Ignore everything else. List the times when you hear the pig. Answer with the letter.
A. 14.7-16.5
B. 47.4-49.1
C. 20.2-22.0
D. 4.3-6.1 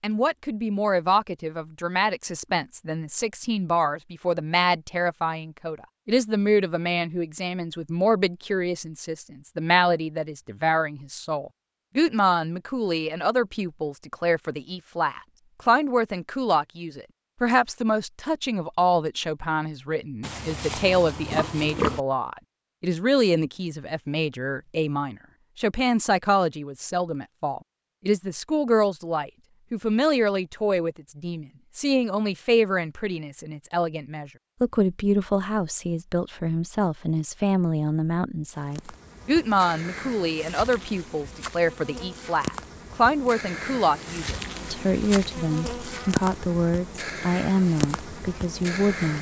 C.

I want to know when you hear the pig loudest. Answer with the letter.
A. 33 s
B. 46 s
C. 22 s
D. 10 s
C.